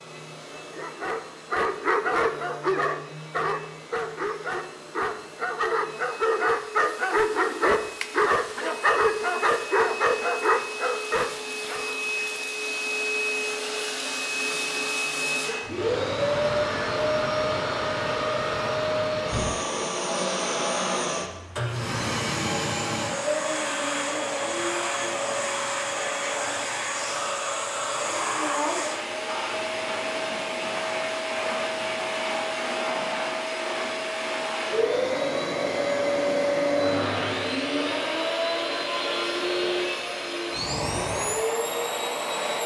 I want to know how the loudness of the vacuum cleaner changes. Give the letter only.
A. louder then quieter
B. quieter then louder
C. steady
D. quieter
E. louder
E.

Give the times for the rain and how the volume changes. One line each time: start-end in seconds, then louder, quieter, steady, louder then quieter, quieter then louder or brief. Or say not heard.
not heard.